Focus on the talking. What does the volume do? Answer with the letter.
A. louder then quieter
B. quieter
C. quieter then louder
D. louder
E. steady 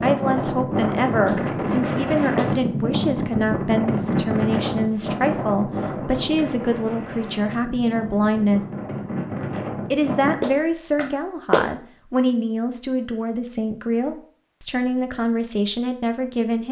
E.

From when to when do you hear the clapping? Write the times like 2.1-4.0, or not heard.
1.2-2.5, 10.4-11.7.